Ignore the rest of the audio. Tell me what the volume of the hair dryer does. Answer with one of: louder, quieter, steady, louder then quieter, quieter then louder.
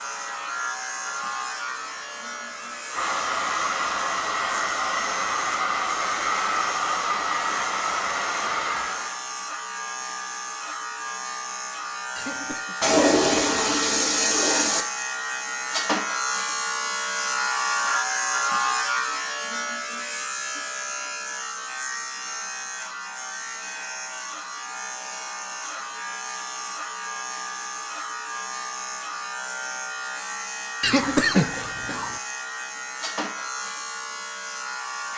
louder.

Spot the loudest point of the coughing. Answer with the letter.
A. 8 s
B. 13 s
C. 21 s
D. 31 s
D.